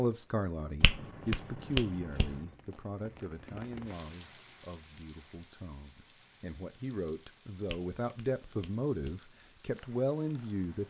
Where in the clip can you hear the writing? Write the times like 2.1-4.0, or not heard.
not heard.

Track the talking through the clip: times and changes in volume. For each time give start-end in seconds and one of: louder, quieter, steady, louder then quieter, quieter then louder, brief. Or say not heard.
0.0-10.8 quieter then louder.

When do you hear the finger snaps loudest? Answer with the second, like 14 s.
2 s.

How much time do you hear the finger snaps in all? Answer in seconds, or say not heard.
3 s.